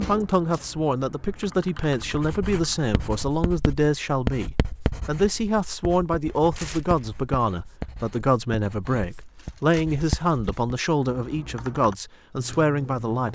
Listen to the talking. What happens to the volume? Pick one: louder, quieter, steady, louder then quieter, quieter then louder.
steady.